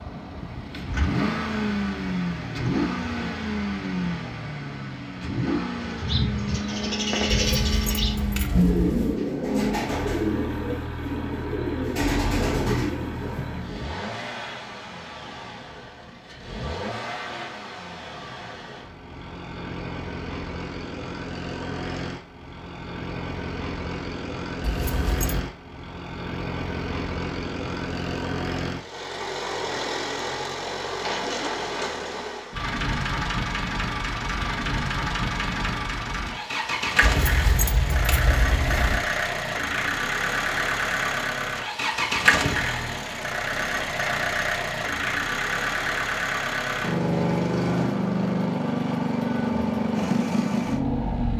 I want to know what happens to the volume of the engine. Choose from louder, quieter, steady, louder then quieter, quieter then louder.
quieter then louder.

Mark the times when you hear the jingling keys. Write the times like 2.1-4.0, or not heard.
7.5-9.2, 24.6-25.4, 37.0-39.0.